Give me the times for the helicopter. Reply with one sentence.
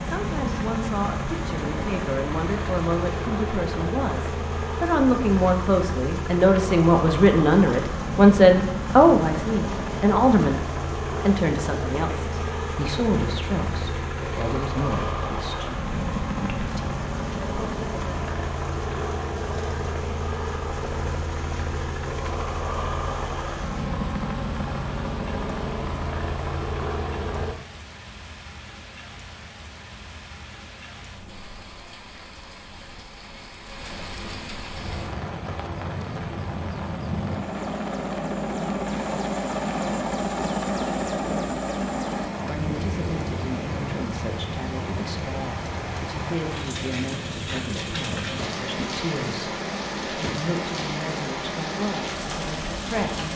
You can hear the helicopter from 0.0 to 27.6 s and from 34.7 to 53.3 s.